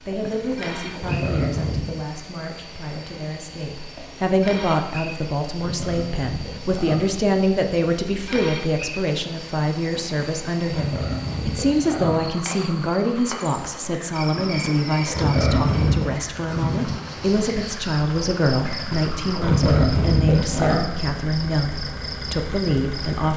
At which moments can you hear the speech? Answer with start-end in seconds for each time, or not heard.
0.0-23.3.